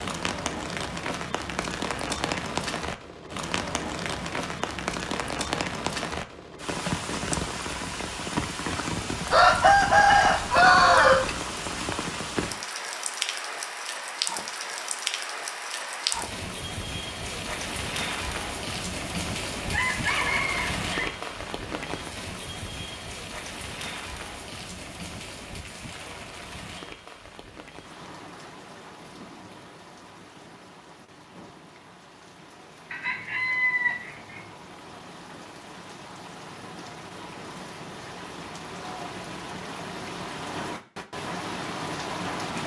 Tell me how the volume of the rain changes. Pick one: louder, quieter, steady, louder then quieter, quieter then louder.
quieter then louder.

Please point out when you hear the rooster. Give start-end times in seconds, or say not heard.
9.3-11.3, 19.7-21.1, 32.9-34.5.